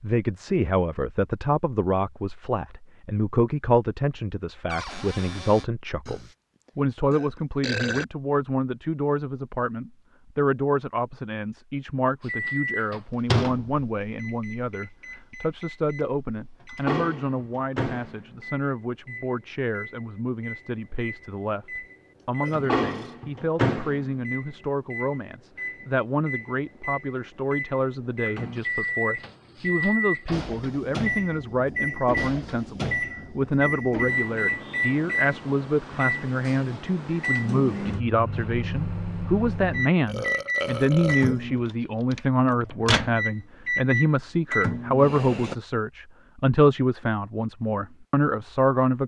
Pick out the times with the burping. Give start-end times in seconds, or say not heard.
6.0-8.1, 22.2-23.1, 40.0-41.4.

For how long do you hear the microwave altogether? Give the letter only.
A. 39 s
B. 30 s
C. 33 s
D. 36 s
C.